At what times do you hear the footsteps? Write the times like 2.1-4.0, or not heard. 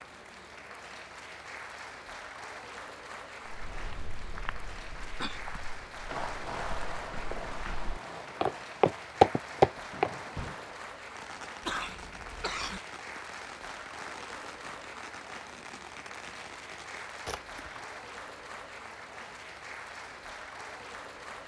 3.5-10.6.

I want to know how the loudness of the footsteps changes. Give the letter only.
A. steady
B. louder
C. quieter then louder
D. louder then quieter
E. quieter
B.